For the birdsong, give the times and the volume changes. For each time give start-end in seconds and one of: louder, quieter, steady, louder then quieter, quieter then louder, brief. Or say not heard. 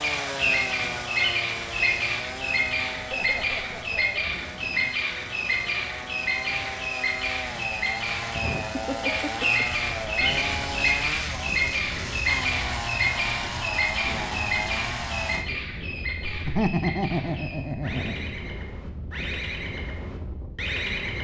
0.0-21.2 quieter.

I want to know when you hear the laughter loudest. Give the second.
17 s.